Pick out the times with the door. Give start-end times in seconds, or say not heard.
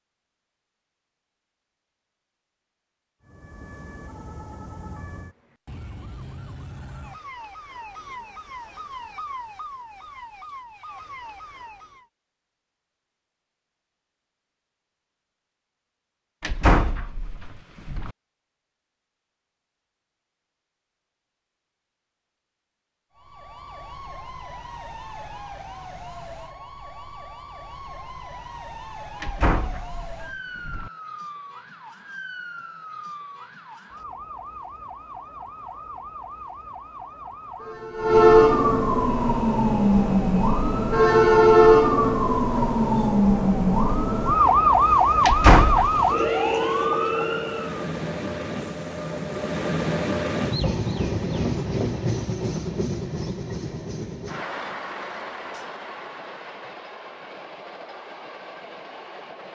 16.4-18.1, 29.2-30.9, 45.2-46.0.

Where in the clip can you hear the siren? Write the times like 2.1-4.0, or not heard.
3.2-12.1, 23.1-47.9.